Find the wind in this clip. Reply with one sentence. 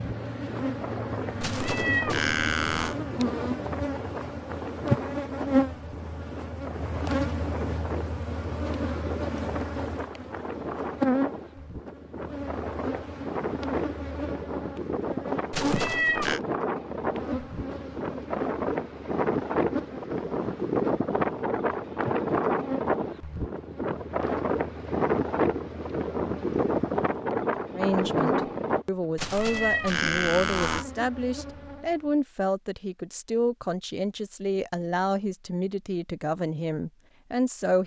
You can hear the wind from 0.0 to 28.9 s.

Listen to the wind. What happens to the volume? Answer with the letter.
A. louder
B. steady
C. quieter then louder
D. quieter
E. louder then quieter
A.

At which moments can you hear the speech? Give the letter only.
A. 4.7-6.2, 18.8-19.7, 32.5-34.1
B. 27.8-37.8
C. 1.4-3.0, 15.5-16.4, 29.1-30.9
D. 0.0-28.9
B.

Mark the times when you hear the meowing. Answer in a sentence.
You can hear the meowing from 1.4 to 3.0 s, from 15.5 to 16.4 s and from 29.1 to 30.9 s.